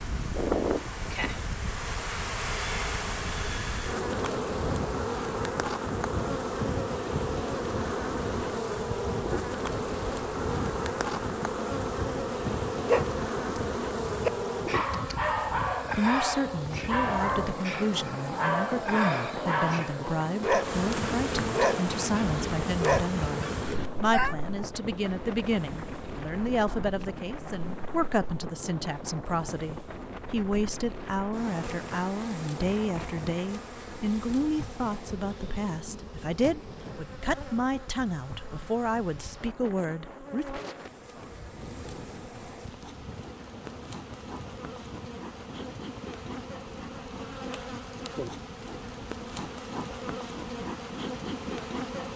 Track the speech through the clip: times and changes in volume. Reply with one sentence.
You can hear the speech from 15.9 to 40.6 s, at a steady volume.